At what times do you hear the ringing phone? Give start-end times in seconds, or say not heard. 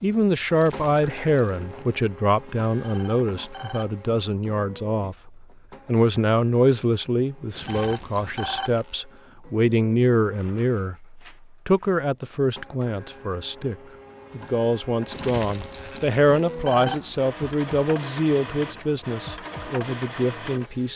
2.8-4.0, 7.7-8.8, 16.6-17.2.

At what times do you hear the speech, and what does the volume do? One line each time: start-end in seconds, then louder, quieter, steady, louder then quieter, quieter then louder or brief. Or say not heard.
0.0-20.9 steady.